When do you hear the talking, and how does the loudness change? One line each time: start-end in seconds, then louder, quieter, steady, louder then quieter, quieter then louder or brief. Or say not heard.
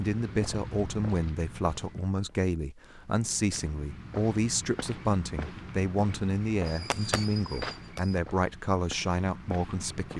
0.0-10.1 steady.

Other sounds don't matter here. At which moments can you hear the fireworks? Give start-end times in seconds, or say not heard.
6.7-8.2.